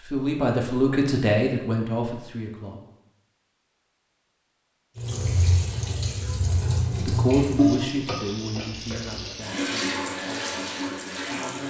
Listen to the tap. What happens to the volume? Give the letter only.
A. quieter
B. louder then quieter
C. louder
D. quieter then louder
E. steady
B.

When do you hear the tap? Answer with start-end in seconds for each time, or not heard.
5.0-11.6.